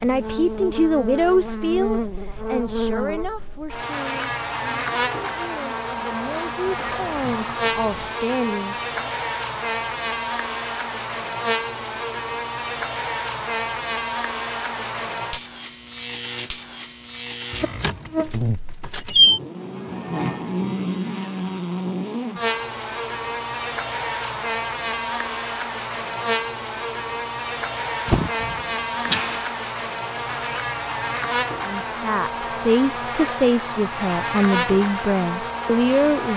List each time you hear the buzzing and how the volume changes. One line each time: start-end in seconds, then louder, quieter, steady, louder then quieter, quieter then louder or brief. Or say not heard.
0.0-36.3 steady.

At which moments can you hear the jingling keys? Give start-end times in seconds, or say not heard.
6.7-8.1, 17.5-19.4, 28.1-29.5.